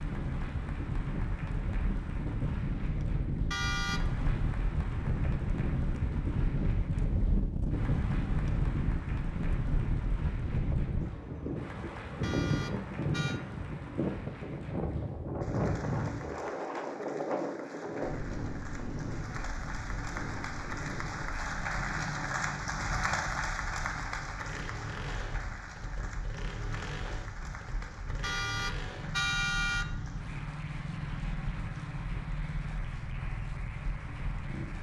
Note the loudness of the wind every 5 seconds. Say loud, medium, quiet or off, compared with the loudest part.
loud, loud, loud, loud, medium, quiet, quiet.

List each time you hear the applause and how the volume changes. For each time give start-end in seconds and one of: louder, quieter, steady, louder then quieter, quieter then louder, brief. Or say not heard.
0.0-34.7 louder then quieter.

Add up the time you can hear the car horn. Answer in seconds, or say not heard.
3 s.